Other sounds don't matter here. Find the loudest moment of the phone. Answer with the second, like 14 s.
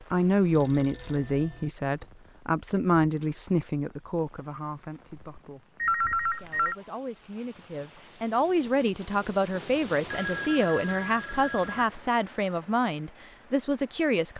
6 s.